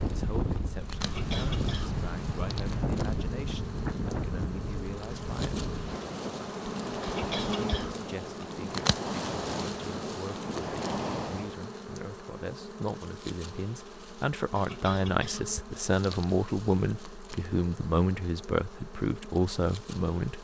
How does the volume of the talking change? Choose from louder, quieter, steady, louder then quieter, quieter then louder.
louder.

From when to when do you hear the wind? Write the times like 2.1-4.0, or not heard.
0.0-11.6.